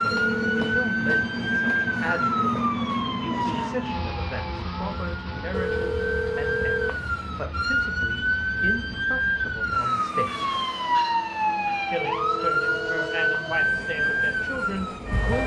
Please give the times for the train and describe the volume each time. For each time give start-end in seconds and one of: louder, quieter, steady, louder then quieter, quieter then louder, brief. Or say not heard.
0.0-15.4 quieter.